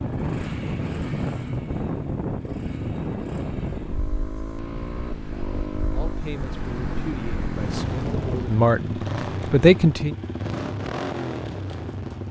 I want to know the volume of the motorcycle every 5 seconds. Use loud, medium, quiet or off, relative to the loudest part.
medium, loud, loud.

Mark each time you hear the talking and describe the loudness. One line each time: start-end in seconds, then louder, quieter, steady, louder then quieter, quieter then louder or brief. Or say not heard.
5.9-10.2 louder.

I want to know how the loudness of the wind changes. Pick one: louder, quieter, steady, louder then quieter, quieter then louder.
quieter then louder.